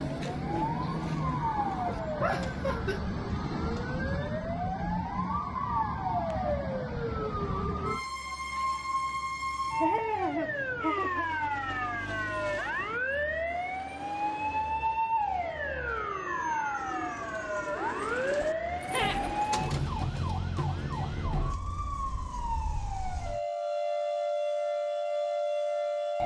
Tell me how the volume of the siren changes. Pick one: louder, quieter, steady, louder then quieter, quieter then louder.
steady.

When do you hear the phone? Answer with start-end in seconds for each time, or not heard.
not heard.